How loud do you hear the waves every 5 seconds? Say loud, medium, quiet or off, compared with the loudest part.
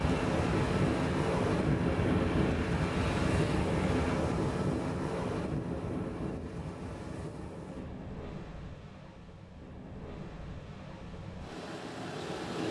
loud, medium, medium.